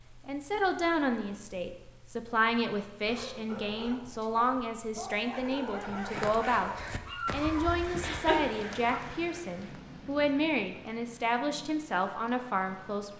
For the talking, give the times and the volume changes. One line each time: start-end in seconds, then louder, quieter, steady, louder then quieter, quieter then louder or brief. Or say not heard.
0.2-13.1 steady.